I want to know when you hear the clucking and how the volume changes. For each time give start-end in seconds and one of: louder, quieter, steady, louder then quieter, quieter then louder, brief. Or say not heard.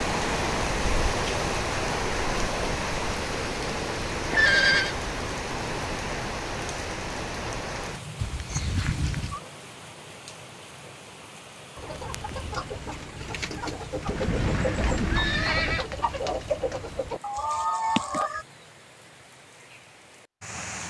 11.8-18.4 louder.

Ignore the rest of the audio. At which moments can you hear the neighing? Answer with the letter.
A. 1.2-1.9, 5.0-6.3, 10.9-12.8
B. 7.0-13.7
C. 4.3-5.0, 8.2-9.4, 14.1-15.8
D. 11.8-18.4
C.